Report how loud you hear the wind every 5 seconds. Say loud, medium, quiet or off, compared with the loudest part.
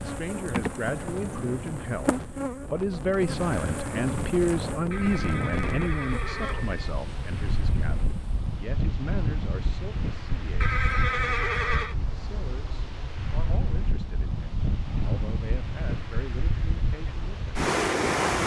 medium, medium, medium, loud.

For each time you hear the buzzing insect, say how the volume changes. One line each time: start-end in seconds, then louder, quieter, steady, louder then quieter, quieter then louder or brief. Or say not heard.
0.0-8.4 quieter.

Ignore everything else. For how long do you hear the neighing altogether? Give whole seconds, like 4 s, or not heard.
3 s.